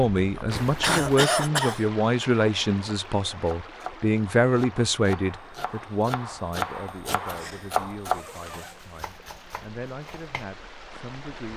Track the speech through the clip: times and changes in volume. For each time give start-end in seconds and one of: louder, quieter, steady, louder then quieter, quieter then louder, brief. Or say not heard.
0.0-11.5 quieter.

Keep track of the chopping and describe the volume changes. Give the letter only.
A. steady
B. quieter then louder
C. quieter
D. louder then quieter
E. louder
D.